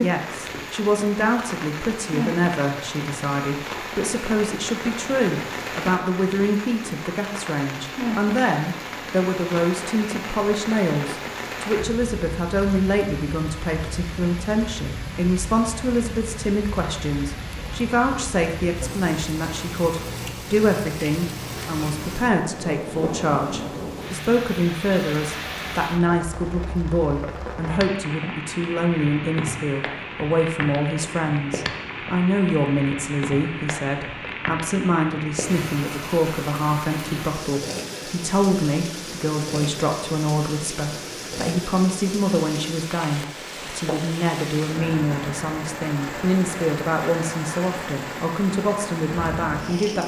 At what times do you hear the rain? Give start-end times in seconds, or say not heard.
0.0-50.0.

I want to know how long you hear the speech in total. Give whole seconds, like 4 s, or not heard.
50 s.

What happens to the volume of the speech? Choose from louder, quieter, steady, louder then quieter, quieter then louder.
steady.